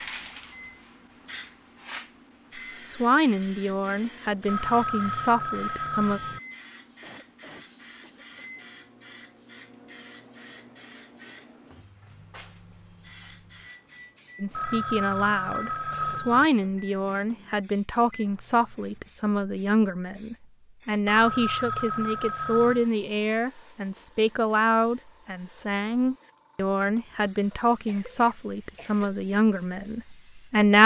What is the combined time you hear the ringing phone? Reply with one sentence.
You can hear the ringing phone for 6 seconds altogether.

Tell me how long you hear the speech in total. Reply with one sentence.
The speech can be heard for 20 seconds in total.